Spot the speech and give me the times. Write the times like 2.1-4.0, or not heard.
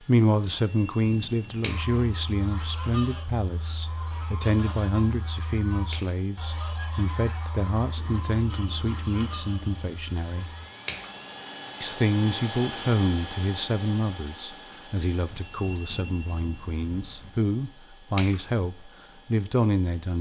0.0-10.4, 11.8-20.1.